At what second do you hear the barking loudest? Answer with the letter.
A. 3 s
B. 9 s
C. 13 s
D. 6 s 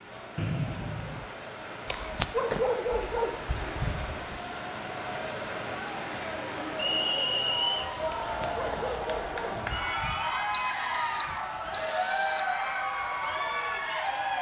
A.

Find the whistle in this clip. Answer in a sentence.
The whistle can be heard from 0.3 to 1.2 s, from 6.8 to 7.9 s and from 10.5 to 12.6 s.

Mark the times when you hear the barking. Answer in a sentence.
You can hear the barking from 1.9 to 4.2 s and from 8.1 to 10.2 s.